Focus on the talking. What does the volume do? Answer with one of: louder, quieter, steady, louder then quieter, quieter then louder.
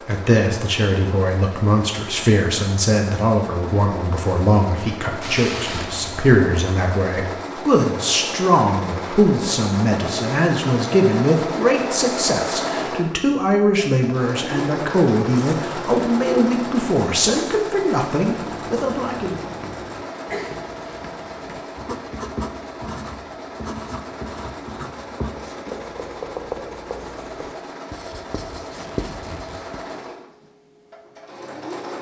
steady.